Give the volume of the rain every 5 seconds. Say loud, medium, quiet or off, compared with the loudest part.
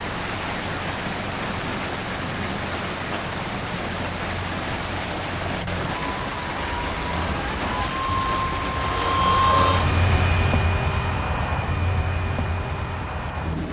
loud, loud, medium.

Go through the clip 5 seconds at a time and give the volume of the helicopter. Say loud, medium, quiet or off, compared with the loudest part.
quiet, loud, loud.